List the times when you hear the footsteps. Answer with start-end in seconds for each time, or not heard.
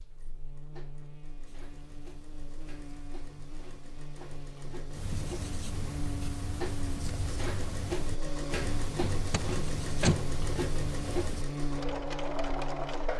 not heard.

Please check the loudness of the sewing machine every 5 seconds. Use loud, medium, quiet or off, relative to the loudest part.
quiet, loud, loud.